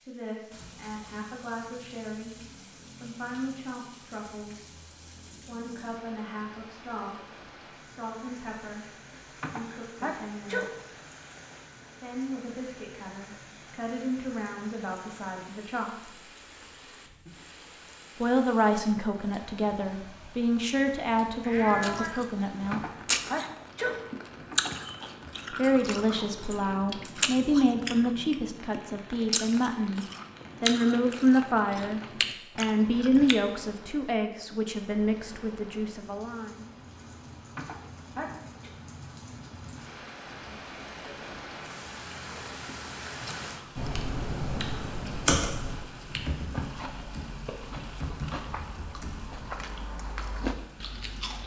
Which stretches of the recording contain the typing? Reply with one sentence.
The typing can be heard from 43.8 to 49.4 s.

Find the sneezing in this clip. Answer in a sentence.
You can hear the sneezing from 9.4 to 10.7 s, from 22.7 to 24.8 s and from 37.5 to 38.7 s.